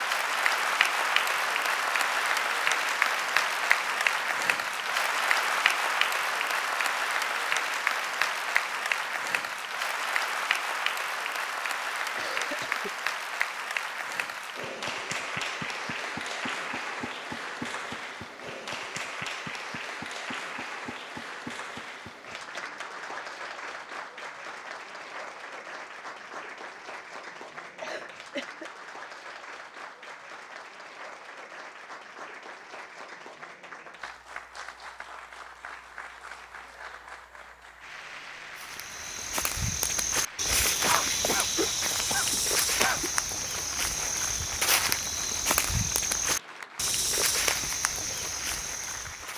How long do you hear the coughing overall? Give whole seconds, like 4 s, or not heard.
4 s.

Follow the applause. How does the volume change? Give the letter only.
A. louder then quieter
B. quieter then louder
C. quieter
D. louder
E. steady
C.